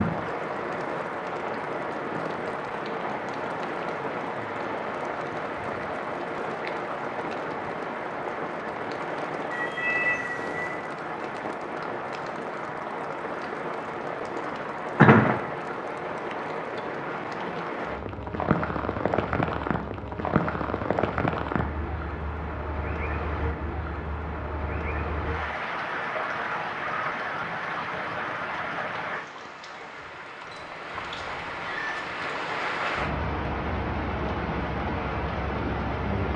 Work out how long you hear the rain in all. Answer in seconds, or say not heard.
36 s.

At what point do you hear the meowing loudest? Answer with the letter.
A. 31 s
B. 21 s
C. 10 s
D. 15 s
C.